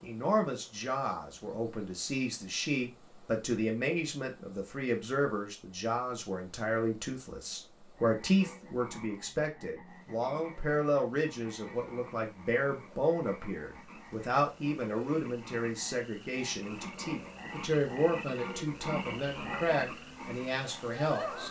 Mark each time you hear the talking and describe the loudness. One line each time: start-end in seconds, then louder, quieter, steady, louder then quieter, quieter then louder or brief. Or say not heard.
0.0-21.4 steady.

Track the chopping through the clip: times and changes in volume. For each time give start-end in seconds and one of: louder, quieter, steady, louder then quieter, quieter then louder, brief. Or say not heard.
not heard.